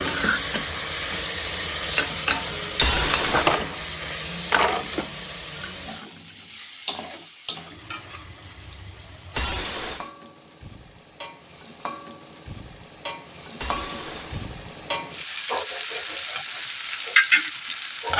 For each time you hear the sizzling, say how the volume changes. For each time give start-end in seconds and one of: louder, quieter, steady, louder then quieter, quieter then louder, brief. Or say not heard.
0.0-18.1 quieter then louder.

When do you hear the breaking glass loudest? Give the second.
3 s.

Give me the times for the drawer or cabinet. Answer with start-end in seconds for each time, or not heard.
3.1-5.1.